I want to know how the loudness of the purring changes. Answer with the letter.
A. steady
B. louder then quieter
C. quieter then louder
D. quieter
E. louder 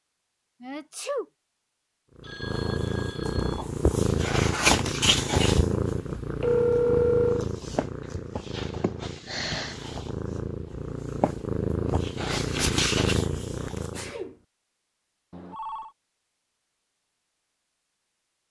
C.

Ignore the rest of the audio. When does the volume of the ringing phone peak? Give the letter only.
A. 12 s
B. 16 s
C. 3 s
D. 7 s
D.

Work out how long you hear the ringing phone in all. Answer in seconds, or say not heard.
3 s.